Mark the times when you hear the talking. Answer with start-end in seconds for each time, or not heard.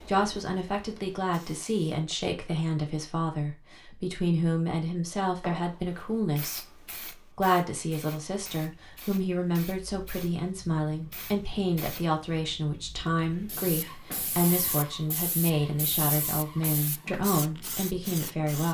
0.1-18.6.